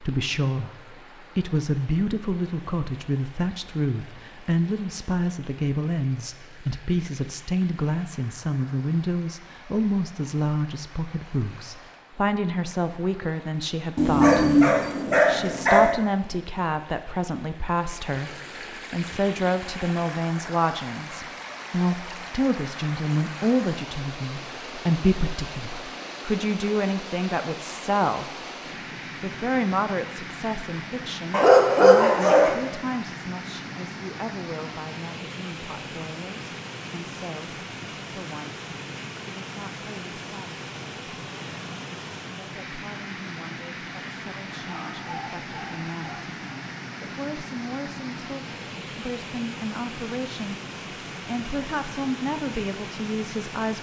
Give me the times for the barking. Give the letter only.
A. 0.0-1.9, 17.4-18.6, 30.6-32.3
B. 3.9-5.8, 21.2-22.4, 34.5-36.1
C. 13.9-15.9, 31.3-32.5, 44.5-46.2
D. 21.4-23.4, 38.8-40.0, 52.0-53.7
C.